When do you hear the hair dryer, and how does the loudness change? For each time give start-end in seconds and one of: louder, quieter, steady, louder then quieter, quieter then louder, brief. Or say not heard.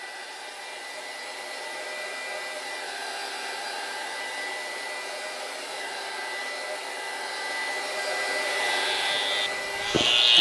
0.0-10.3 louder.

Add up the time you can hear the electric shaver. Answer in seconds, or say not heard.
2 s.